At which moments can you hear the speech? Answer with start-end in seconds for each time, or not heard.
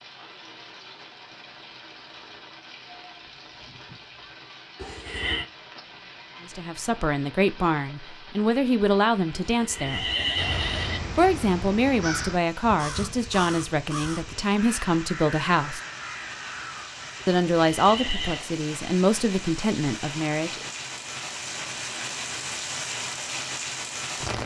6.4-10.1, 11.2-15.8, 17.2-20.6.